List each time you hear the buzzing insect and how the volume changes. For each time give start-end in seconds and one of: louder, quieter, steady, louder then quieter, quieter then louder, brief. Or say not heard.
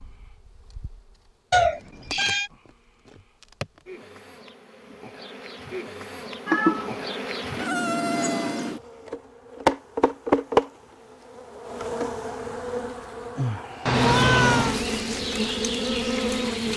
0.0-16.7 louder.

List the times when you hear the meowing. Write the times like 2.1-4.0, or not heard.
1.5-2.5, 6.5-7.2, 13.8-14.8.